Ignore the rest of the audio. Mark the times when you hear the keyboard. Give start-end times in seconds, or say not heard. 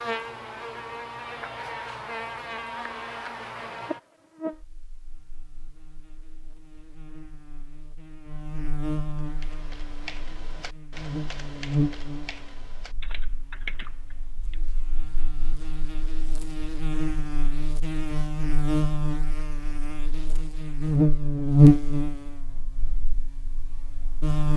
9.2-14.6.